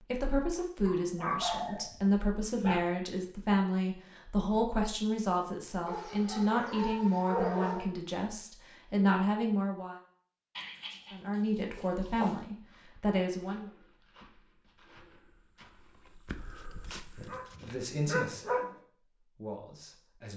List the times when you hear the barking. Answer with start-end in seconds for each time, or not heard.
0.8-2.8, 5.8-7.8, 10.6-12.3, 17.1-18.8.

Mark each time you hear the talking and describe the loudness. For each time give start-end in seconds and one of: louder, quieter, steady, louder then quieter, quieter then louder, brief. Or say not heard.
0.1-9.9 steady
11.1-13.7 brief
17.6-20.3 brief.